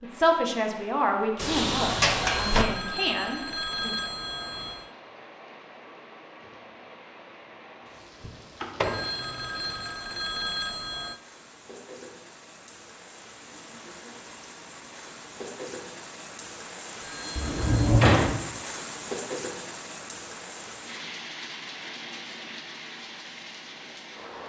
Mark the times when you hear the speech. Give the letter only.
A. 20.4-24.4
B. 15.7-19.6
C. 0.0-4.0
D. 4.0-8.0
C.